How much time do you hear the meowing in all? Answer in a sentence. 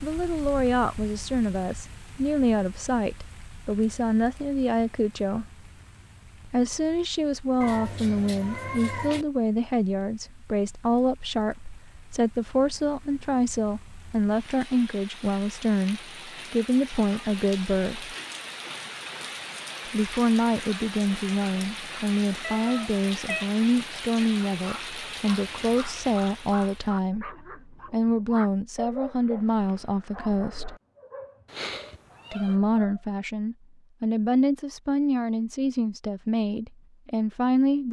You can hear the meowing for 4 seconds altogether.